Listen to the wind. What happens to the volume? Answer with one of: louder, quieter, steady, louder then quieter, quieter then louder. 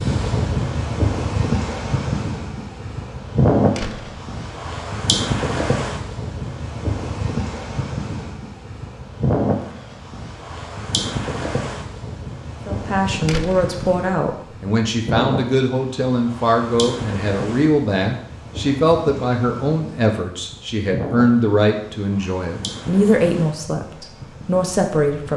quieter.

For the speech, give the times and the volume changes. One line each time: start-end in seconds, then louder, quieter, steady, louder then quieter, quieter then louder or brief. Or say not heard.
12.7-25.3 steady.